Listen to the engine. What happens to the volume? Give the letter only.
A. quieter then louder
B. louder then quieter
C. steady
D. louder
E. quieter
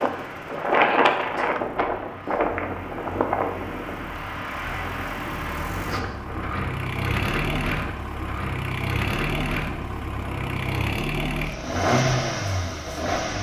D.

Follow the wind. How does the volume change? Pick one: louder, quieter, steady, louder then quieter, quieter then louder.
quieter.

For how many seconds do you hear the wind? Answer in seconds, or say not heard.
11 s.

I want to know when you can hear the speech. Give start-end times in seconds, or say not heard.
not heard.